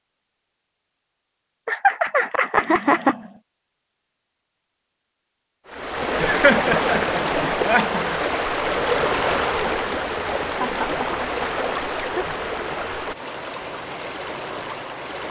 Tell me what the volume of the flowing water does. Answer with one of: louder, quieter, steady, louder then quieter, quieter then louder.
quieter.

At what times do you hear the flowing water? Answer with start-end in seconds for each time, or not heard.
5.7-15.2.